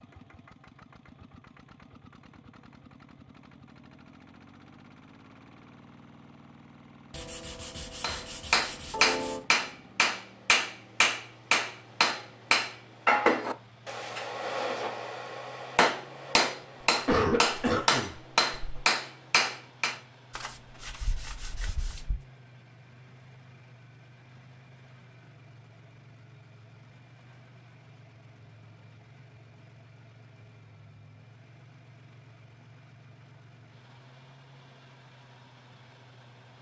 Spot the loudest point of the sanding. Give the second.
9 s.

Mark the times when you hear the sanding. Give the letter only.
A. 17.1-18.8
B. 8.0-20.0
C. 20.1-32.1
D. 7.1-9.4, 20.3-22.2
D.